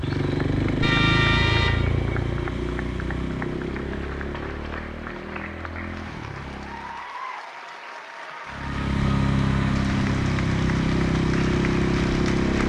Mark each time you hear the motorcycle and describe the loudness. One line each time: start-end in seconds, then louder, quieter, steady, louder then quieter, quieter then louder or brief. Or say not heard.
0.0-7.0 quieter
8.4-12.6 steady.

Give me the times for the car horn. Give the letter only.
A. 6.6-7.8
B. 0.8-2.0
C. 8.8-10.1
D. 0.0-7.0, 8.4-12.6
B.